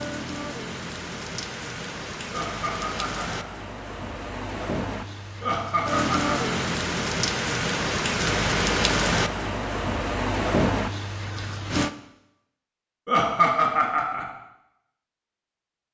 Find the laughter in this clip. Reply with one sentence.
You can hear the laughter from 2.3 to 3.5 s, from 5.4 to 6.5 s and from 13.1 to 14.2 s.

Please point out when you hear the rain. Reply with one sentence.
The rain can be heard from 0.0 to 11.9 s.